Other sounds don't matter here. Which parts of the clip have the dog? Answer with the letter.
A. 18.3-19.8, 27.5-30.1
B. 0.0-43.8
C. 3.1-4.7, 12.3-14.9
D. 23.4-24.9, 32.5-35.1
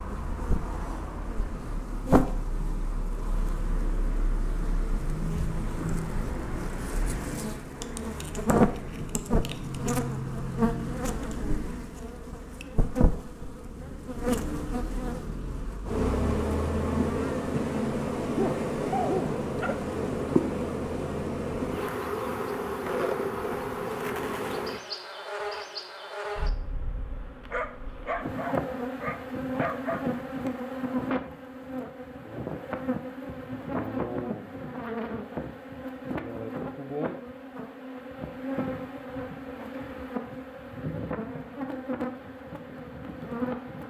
A.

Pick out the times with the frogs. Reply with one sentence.
You can't hear the frogs here.